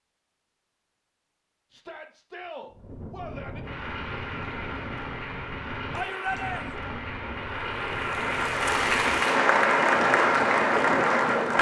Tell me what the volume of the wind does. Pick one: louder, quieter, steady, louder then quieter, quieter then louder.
louder.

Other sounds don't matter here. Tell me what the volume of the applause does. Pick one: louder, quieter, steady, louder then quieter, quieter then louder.
louder.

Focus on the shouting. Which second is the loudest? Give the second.
6 s.